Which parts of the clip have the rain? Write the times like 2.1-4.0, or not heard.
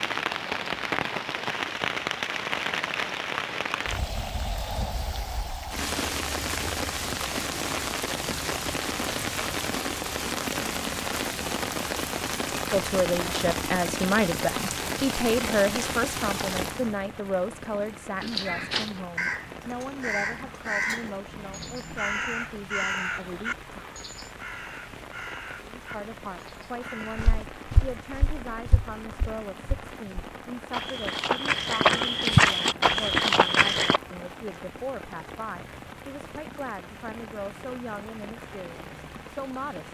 0.0-39.8.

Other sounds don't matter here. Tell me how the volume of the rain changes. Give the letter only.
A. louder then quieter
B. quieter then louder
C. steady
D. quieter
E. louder
D.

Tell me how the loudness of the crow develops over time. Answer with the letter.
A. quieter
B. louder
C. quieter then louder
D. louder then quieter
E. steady
A.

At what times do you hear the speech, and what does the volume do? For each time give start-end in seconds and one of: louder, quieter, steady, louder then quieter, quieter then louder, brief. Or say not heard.
12.5-23.9 quieter
25.8-39.8 steady.